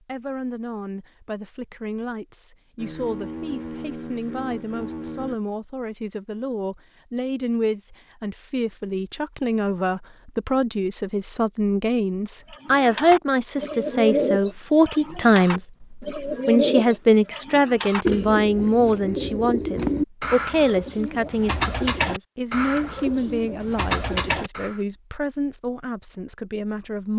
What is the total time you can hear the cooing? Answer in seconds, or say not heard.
12 s.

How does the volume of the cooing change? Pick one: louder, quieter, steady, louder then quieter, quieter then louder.
steady.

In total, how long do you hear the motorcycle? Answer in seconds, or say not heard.
3 s.